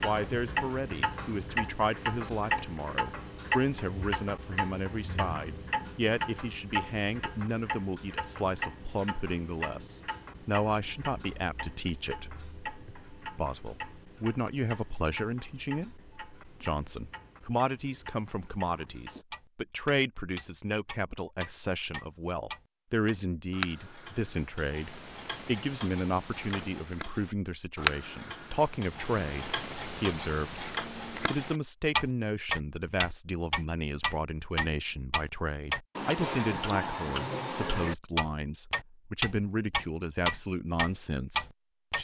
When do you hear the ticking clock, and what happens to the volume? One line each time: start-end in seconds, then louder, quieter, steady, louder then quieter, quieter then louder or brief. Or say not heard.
0.0-41.9 quieter then louder.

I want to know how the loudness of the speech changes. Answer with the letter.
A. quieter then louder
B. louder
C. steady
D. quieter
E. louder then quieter
C.